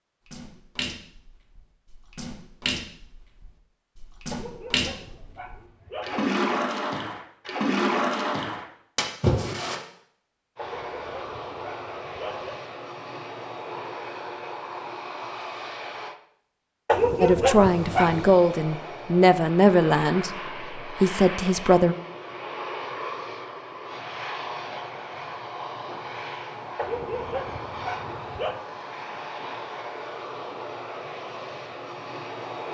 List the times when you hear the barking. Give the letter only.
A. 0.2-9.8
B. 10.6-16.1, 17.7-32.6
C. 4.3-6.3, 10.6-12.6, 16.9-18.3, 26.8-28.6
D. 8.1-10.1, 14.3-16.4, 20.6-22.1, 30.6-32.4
C.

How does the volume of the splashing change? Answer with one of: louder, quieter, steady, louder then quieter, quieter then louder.
louder.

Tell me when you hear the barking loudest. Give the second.
17 s.